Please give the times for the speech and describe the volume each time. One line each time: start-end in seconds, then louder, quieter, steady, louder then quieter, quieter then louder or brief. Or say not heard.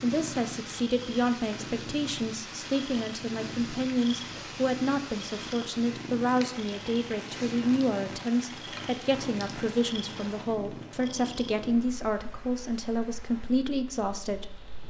0.0-14.8 steady.